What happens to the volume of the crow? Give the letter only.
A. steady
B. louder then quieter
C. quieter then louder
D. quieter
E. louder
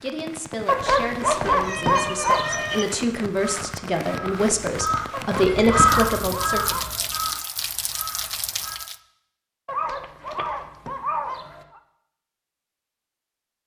B.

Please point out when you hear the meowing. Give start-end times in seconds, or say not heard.
1.6-2.9, 5.5-6.3, 9.7-11.8.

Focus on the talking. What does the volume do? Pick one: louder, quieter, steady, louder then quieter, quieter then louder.
louder.